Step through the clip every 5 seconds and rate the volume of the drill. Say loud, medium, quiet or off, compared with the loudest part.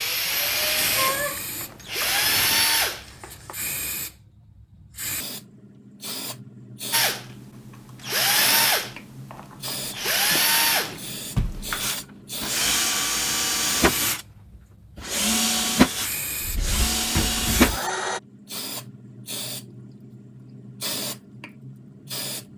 loud, loud, loud, loud, off.